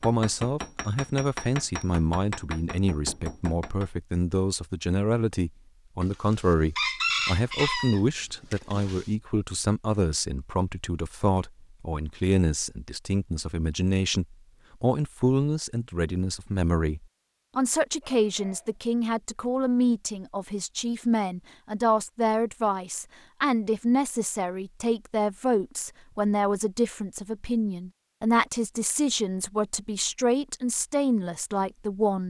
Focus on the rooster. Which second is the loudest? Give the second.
7 s.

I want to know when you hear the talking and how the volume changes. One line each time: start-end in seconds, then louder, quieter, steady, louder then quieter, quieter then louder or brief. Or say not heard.
0.0-32.2 steady.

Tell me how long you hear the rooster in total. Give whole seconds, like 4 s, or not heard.
3 s.